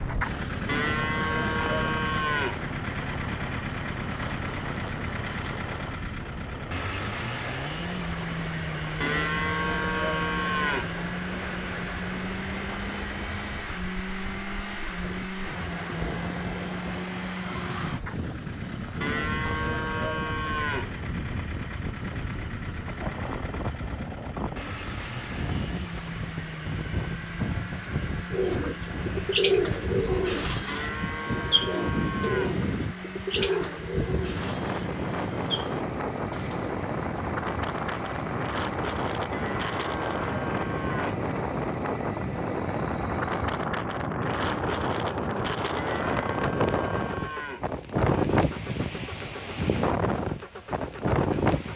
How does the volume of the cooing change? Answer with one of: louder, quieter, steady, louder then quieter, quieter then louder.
quieter.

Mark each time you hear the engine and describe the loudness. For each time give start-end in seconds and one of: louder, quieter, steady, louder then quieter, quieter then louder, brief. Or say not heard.
0.0-51.7 quieter.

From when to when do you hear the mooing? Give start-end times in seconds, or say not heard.
0.7-2.6, 9.0-10.9, 19.0-20.9, 30.6-32.6, 39.3-41.2, 45.8-47.7.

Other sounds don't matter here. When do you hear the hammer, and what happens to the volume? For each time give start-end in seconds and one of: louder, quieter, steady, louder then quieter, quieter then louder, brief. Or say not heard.
not heard.